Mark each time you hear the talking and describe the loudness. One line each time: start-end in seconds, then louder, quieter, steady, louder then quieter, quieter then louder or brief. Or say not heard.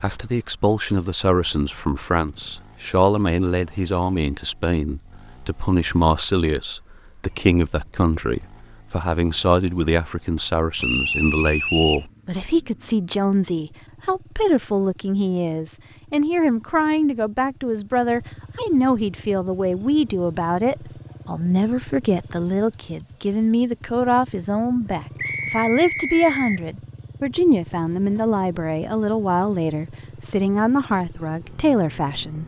0.0-32.4 steady.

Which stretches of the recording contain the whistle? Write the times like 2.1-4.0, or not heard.
10.8-12.1, 25.1-26.6.